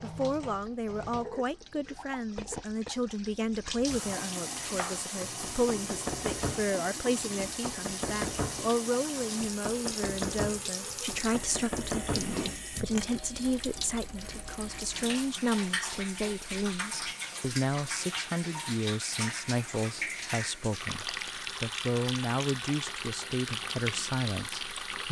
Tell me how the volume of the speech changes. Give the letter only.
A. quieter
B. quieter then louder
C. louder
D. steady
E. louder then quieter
D.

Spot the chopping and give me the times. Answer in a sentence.
You can hear the chopping from 4.5 to 12.4 s.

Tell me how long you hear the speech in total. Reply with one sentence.
You can hear the speech for 25 seconds altogether.